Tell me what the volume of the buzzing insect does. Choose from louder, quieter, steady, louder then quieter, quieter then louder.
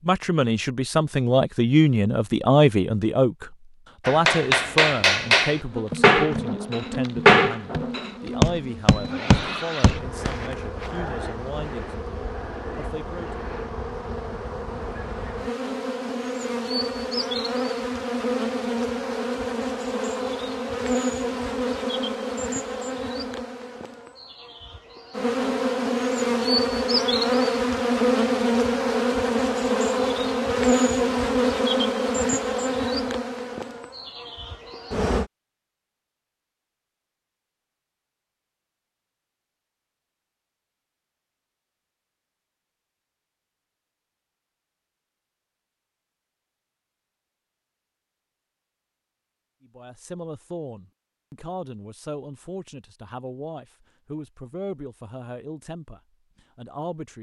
louder.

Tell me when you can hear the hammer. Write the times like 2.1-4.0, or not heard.
4.0-10.3.